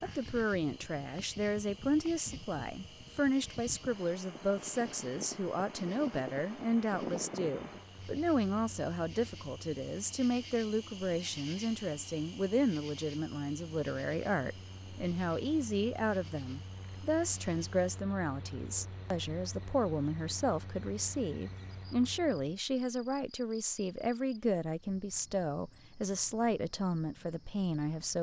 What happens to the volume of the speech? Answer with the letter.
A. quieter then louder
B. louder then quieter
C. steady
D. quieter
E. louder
C.